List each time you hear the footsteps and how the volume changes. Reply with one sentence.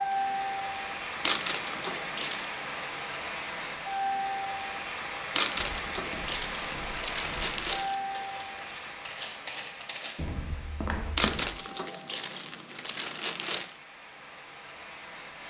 You can hear the footsteps from 5.5 to 11.6 s, getting louder.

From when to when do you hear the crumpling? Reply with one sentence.
The crumpling can be heard from 1.2 to 2.5 s, from 5.3 to 8.0 s and from 11.2 to 13.7 s.